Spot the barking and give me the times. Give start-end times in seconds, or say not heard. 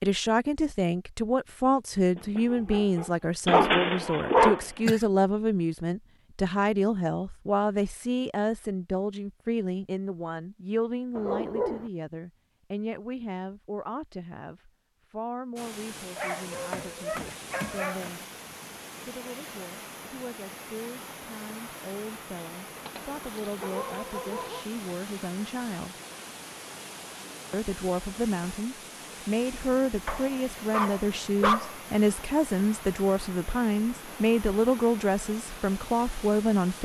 2.1-5.0, 11.2-11.9, 16.1-18.1, 22.8-24.6, 30.1-31.8.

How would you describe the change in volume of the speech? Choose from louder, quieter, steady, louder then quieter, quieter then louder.
quieter then louder.